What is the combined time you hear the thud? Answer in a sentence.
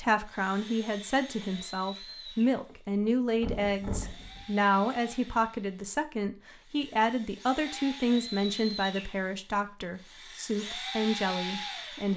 You can hear the thud for 2 seconds altogether.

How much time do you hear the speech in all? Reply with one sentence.
You can hear the speech for 12 seconds altogether.